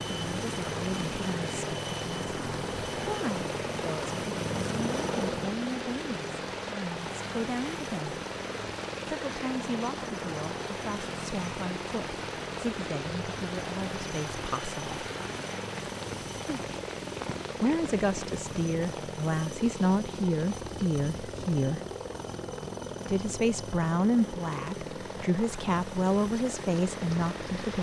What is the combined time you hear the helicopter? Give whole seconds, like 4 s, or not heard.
28 s.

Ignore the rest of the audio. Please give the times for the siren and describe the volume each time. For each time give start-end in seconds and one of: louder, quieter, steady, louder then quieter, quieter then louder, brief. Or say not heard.
not heard.